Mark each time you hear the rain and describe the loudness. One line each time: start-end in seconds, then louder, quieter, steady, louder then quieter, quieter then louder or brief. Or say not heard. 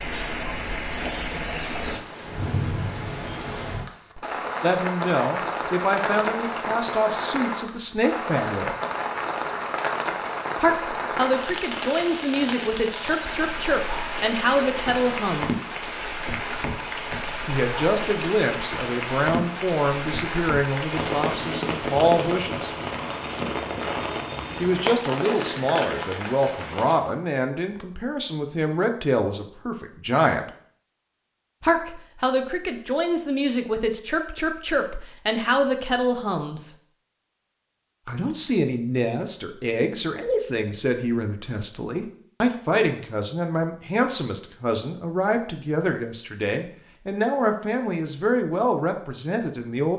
0.0-27.1 steady.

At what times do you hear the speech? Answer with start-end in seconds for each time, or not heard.
4.6-8.8, 10.6-15.7, 17.4-22.7, 24.6-30.5, 31.6-36.7, 38.0-49.9.